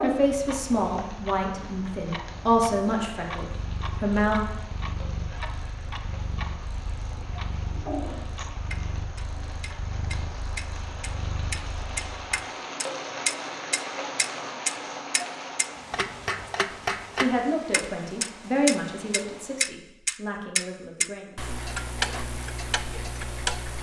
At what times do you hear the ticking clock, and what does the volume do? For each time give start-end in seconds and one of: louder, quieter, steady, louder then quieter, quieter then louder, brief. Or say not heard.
0.0-23.7 louder.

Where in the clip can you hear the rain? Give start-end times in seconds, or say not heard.
0.0-19.6.